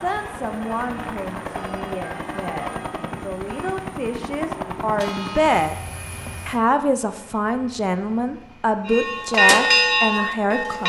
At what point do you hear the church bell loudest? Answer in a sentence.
The loudest moment of the church bell is at 10 seconds.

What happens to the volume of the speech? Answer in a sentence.
The volume of the speech goes up.